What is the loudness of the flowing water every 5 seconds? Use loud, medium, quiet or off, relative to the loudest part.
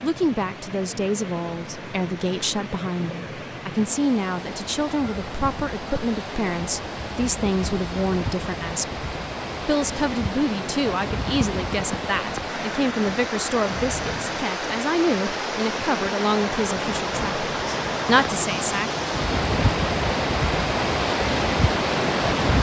quiet, medium, medium, loud, loud.